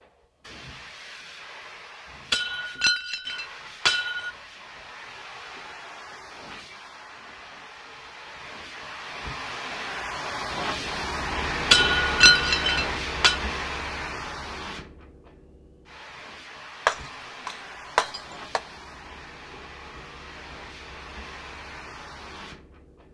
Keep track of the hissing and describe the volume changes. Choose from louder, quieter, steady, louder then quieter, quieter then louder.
louder then quieter.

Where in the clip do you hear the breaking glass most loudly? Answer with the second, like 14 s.
12 s.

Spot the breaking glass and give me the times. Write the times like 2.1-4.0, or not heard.
2.3-4.3, 11.7-13.3, 16.9-18.6.